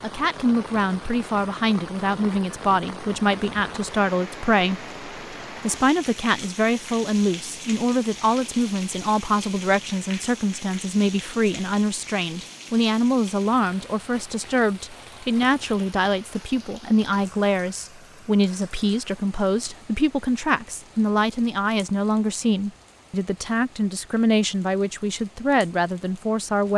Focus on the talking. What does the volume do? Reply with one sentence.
The volume of the talking stays about the same.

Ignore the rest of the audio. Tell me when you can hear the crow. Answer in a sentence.
The crow can't be heard in this clip.